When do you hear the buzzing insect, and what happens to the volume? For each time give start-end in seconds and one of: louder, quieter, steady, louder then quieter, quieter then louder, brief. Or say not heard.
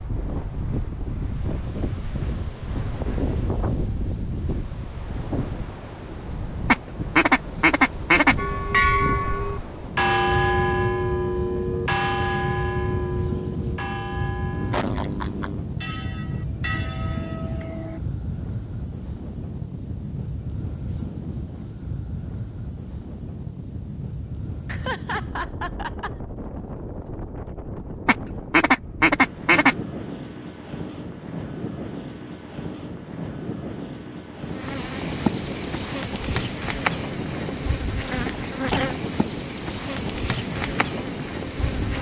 34.4-41.9 steady.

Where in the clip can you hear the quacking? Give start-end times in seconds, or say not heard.
6.7-8.3, 28.1-29.8.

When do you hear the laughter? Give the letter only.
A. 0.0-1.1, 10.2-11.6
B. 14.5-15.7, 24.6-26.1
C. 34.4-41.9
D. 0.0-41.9
B.